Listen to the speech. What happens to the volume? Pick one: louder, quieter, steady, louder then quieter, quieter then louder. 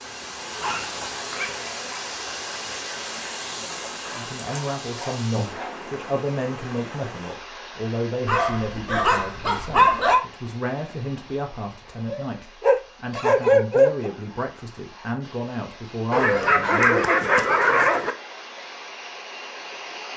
steady.